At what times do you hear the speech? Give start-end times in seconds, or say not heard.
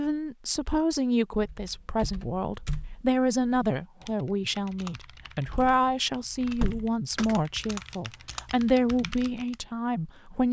0.0-10.4.